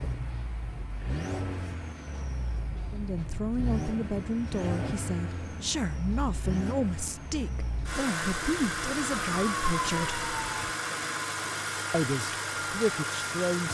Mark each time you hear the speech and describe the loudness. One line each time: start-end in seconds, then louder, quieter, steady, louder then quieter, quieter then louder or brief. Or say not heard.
2.9-10.2 steady
11.9-13.6 brief.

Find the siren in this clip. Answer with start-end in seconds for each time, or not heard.
8.2-10.8.